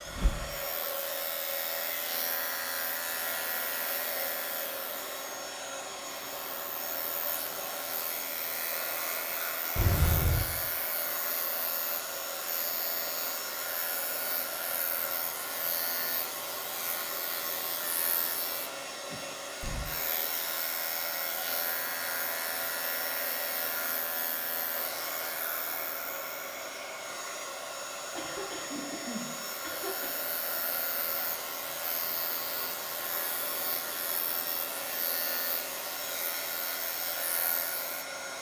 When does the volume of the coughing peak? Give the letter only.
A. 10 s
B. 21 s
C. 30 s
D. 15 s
A.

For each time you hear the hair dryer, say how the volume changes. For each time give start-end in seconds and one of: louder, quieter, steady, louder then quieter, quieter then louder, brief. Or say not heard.
0.0-38.3 steady.